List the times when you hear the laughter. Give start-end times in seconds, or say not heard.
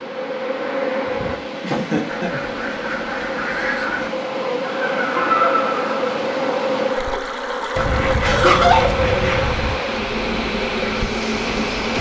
1.6-2.3, 4.6-6.0, 8.2-8.9.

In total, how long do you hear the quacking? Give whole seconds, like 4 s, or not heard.
4 s.